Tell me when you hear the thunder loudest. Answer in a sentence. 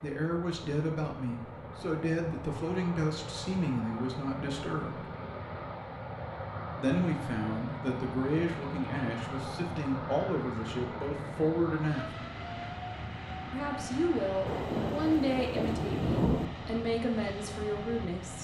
The volume of the thunder peaks at 16 seconds.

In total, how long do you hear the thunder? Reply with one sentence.
You can hear the thunder for 2 seconds altogether.